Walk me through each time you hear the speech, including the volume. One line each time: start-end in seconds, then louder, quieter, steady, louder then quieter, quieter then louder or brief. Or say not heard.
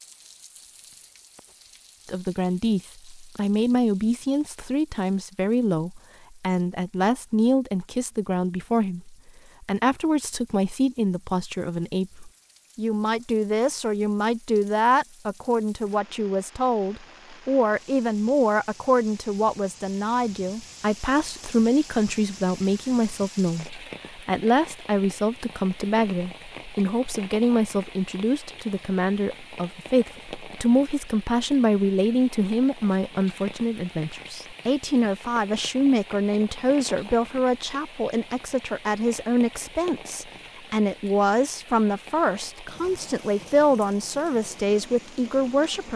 2.0-45.9 steady.